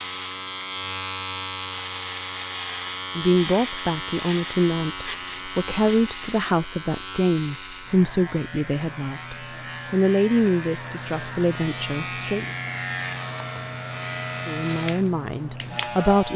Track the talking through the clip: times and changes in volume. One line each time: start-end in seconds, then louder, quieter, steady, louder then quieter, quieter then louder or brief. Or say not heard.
3.1-12.4 steady
14.4-16.3 brief.